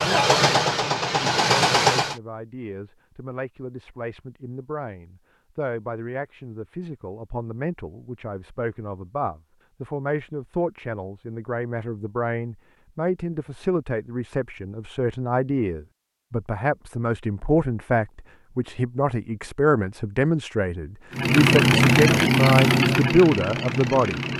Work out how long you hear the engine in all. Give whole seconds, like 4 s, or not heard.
5 s.